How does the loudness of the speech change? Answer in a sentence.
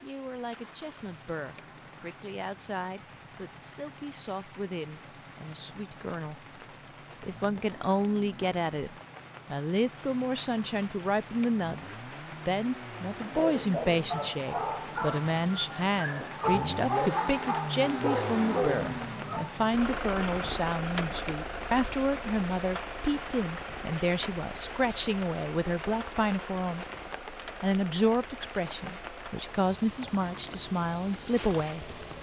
The loudness of the speech goes up.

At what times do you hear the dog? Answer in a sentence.
The dog can be heard from 13.3 to 19.6 s.